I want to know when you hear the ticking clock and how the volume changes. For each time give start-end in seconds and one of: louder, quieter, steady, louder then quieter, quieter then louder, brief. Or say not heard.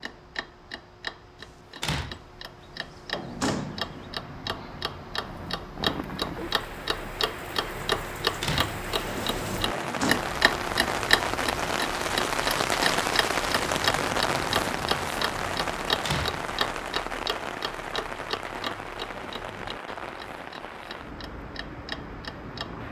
0.0-22.8 louder then quieter.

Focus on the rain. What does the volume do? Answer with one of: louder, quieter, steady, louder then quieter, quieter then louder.
louder then quieter.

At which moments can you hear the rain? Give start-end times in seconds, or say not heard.
5.2-22.8.